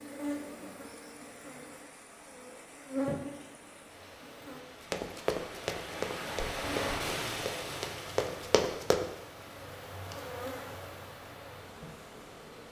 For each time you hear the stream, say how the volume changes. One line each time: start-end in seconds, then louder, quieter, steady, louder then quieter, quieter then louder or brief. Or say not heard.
0.0-12.6 louder then quieter.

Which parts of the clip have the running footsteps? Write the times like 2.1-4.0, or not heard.
4.9-9.1.